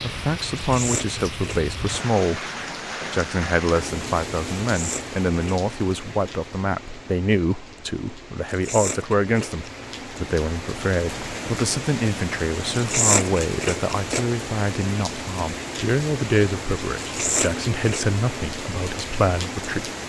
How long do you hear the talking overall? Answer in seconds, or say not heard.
19 s.